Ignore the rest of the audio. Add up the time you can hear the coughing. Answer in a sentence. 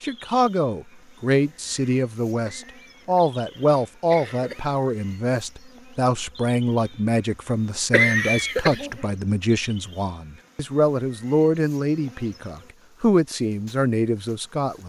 You can hear the coughing for 3 seconds altogether.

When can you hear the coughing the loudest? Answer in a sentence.
The volume of the coughing peaks at 8 seconds.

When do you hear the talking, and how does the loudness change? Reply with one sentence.
You can hear the talking from 0.0 to 14.8 s, at a steady volume.